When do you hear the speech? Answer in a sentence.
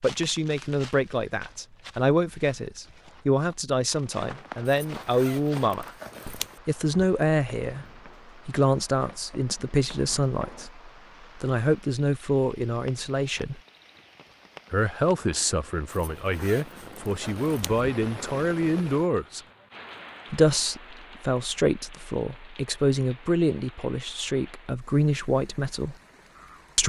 You can hear the speech from 0.0 to 5.9 s, from 6.7 to 7.8 s, from 8.4 to 13.6 s, from 14.7 to 19.4 s and from 20.3 to 25.9 s.